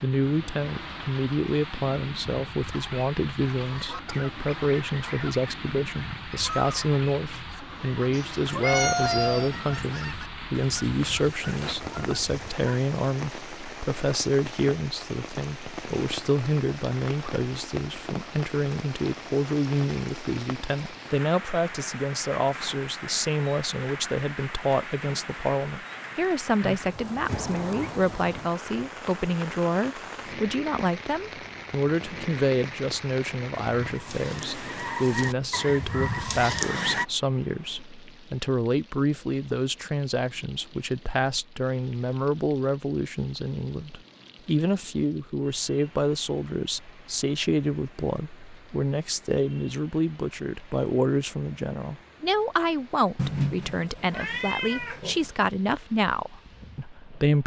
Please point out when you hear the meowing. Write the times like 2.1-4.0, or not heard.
8.1-9.8, 27.2-28.0, 53.1-55.3.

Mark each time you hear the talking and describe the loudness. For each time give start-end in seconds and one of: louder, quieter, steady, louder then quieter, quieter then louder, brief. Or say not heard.
0.0-57.4 steady.